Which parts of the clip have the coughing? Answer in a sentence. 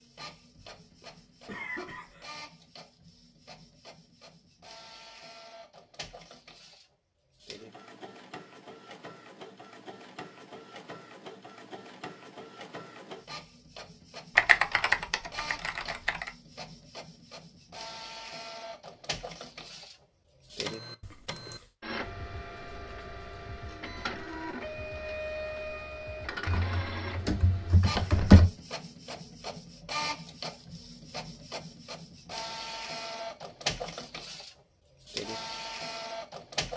You can hear the coughing from 0.6 to 2.4 s and from 21.0 to 21.6 s.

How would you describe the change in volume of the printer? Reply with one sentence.
The loudness of the printer goes up.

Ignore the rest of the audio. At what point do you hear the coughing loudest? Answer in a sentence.
The volume of the coughing peaks at 2 seconds.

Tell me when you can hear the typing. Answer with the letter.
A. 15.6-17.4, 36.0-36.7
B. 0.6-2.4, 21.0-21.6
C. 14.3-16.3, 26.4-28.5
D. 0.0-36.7
C.